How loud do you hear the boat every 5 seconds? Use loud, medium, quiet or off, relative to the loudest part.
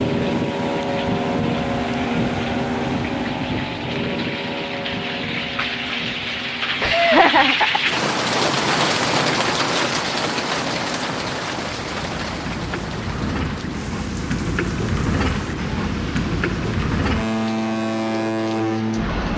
loud, medium, medium, loud.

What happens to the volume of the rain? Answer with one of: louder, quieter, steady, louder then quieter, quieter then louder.
louder then quieter.